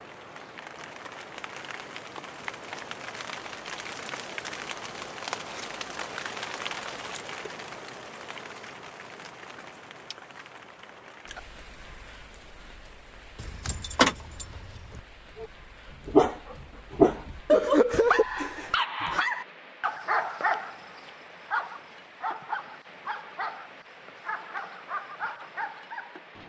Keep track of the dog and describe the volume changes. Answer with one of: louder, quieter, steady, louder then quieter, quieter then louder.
quieter.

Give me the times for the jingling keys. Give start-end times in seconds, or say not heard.
13.3-15.0.